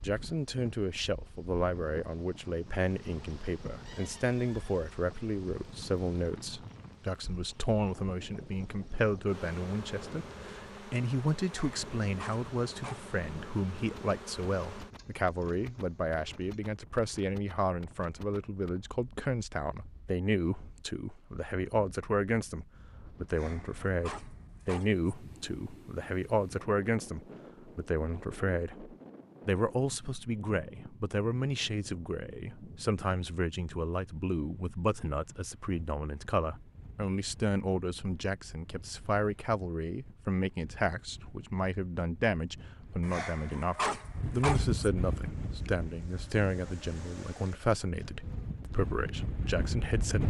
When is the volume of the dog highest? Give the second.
44 s.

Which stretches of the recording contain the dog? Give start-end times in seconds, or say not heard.
11.4-13.1, 23.2-25.1, 43.0-44.9.